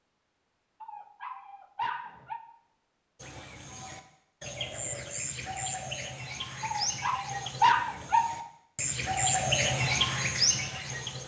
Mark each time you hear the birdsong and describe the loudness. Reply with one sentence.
You can hear the birdsong from 3.1 to 11.2 s, getting louder.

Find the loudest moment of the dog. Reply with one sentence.
The loudest moment of the dog is at 8 seconds.